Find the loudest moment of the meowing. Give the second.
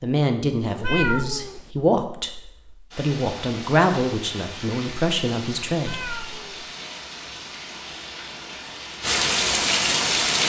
1 s.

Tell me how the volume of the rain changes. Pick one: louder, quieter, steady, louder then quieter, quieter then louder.
louder.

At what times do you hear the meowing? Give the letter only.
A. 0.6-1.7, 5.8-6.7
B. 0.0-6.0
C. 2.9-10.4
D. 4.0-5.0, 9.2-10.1
A.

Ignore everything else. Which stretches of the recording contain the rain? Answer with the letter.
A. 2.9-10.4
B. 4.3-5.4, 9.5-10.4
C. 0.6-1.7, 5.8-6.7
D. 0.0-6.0
A.